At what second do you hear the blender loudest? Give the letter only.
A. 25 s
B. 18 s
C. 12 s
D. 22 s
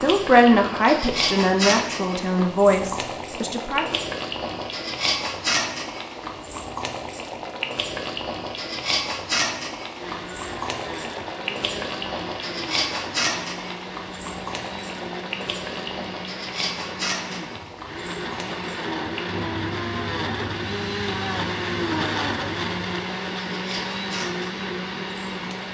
D.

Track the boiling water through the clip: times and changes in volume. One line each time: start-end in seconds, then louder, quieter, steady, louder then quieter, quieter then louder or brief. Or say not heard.
0.0-25.6 quieter.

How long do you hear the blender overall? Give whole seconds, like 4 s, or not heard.
16 s.